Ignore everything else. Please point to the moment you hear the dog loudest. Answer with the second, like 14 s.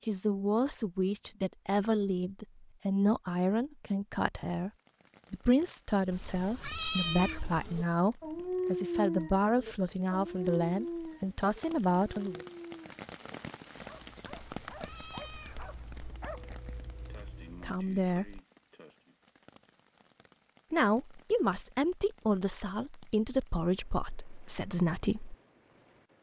9 s.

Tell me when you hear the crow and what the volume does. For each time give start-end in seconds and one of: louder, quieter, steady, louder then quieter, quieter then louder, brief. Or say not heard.
not heard.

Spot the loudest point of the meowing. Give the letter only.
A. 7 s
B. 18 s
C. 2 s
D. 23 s
A.